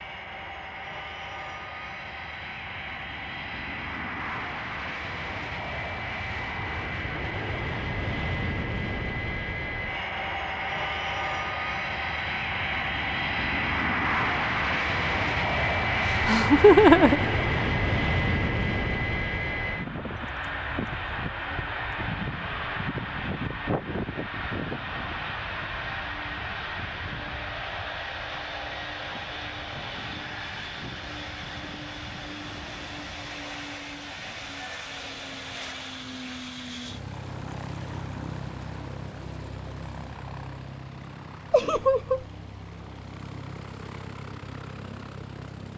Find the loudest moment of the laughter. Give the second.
17 s.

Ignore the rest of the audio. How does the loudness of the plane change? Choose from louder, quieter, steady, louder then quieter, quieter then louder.
louder then quieter.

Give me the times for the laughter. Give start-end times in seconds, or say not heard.
16.1-17.7, 41.5-42.2.